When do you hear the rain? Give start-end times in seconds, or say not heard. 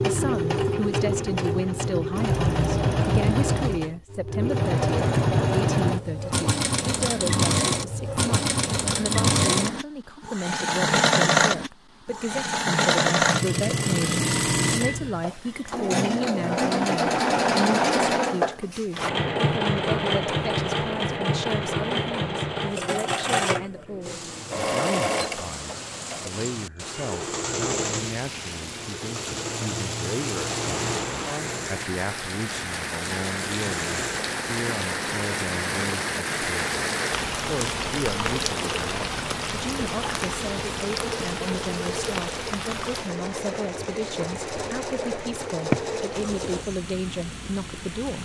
24.0-48.2.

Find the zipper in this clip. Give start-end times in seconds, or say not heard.
not heard.